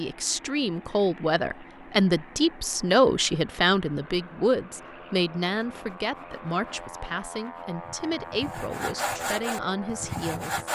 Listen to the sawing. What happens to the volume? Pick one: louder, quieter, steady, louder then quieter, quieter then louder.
louder.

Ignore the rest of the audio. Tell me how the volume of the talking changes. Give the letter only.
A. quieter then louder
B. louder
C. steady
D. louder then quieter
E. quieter
E.